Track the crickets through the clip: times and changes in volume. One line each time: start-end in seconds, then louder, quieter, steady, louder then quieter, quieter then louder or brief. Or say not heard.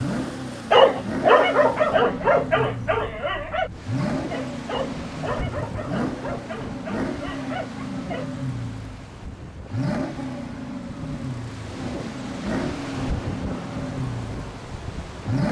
not heard.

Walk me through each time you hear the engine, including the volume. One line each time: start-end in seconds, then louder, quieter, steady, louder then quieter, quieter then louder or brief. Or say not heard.
0.0-15.4 steady.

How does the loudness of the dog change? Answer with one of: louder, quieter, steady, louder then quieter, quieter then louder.
quieter.